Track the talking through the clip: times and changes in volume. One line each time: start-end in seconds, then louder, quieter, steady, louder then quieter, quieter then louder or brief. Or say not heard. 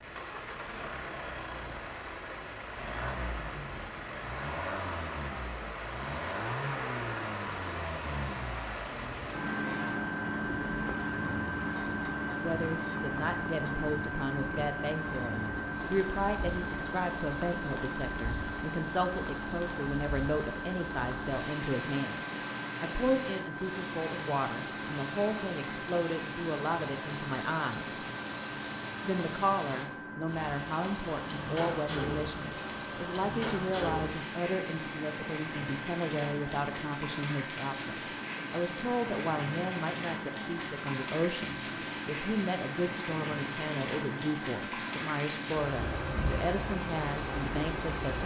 12.4-28.0 steady
29.0-48.2 steady.